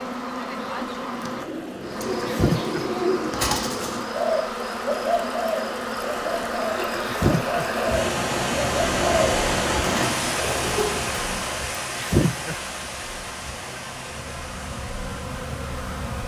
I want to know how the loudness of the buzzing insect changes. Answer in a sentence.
The loudness of the buzzing insect goes down.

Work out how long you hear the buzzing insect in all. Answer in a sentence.
You can hear the buzzing insect for 16 seconds altogether.